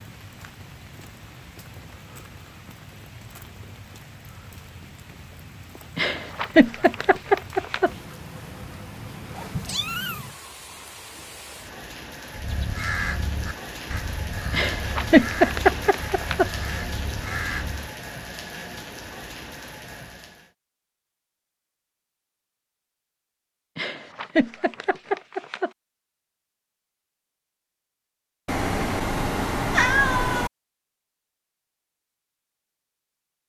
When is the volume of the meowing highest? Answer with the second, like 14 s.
30 s.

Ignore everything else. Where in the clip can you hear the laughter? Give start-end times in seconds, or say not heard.
6.0-7.9, 14.5-16.5, 23.8-25.7.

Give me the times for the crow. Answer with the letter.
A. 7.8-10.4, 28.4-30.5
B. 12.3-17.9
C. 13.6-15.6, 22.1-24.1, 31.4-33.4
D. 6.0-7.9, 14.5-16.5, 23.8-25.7
B.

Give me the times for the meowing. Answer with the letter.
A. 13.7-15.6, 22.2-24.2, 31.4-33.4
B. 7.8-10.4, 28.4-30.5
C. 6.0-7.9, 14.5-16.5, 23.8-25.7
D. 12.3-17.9
B.